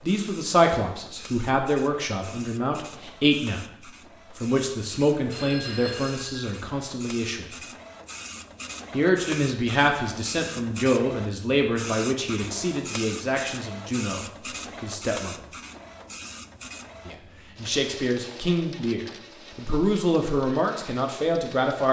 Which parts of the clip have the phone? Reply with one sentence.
The phone can be heard from 5.3 to 6.5 s.